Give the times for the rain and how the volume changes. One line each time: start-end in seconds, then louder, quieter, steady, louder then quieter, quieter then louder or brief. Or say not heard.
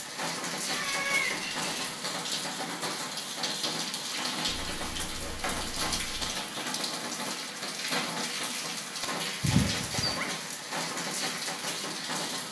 0.0-12.4 steady.